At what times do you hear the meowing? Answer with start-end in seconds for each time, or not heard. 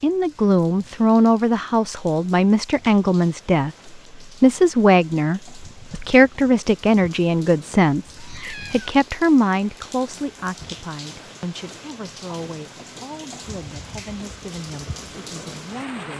8.2-8.9.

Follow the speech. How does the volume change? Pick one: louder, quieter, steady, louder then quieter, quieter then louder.
quieter.